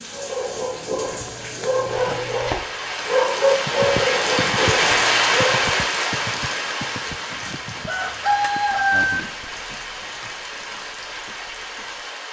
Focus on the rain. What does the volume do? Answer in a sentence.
The volume of the rain goes up, then down.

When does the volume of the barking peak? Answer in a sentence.
The volume of the barking peaks at 3 seconds.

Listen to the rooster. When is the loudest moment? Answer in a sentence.
The volume of the rooster peaks at 9 seconds.